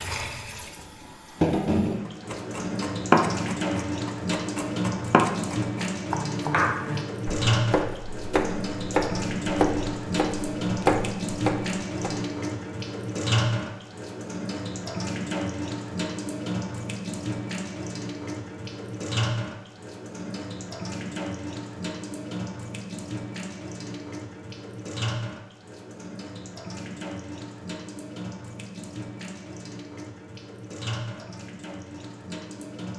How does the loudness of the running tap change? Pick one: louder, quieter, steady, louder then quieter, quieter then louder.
quieter.